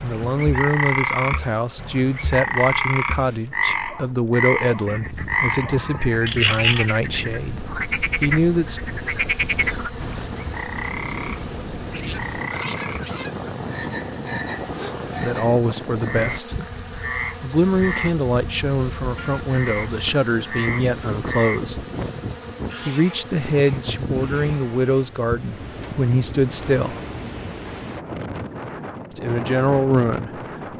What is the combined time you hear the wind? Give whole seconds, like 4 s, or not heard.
24 s.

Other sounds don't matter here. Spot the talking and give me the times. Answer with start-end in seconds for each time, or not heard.
0.0-8.8, 15.2-16.6, 17.4-21.9, 22.9-27.0, 29.1-30.7.